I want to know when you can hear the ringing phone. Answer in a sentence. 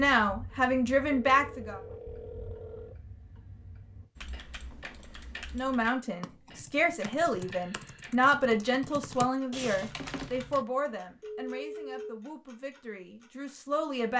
You can hear the ringing phone from 1.1 to 3.0 s and from 10.8 to 12.1 s.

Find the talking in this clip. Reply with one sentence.
The talking can be heard from 0.0 to 1.8 s and from 5.5 to 14.1 s.